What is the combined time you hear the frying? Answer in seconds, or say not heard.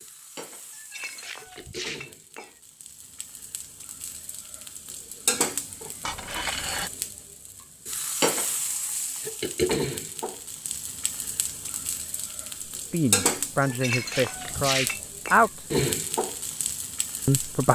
18 s.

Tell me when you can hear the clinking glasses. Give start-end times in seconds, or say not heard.
0.7-2.5, 6.0-6.9, 13.6-15.4.